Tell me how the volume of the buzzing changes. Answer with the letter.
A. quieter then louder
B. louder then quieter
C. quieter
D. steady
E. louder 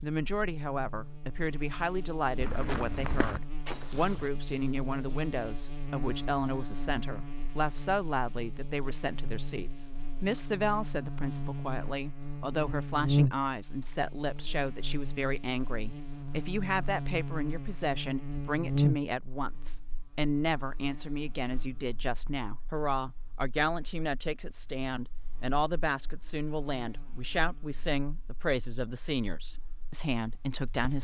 B.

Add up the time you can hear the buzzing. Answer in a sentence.
You can hear the buzzing for 31 seconds altogether.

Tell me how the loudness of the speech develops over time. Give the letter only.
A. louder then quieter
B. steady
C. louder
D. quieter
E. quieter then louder
B.